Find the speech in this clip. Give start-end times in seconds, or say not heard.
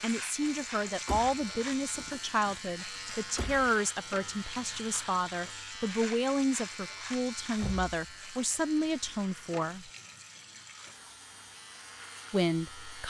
0.0-9.9, 12.3-13.0.